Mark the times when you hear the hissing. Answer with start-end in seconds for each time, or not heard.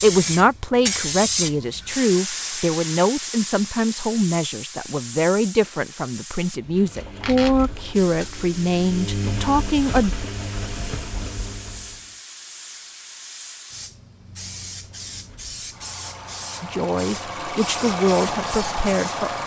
0.0-19.2.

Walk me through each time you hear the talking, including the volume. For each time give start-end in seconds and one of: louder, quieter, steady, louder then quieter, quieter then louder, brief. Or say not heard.
0.0-10.2 steady
16.6-19.4 brief.